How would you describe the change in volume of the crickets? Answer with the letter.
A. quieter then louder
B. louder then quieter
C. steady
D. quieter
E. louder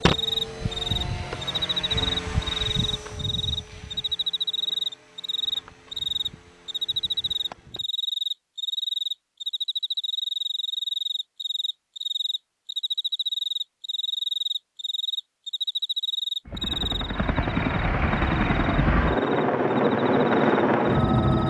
D.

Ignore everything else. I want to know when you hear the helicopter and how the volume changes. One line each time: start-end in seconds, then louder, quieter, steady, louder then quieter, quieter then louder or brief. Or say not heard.
0.0-7.8 quieter
16.4-21.4 louder.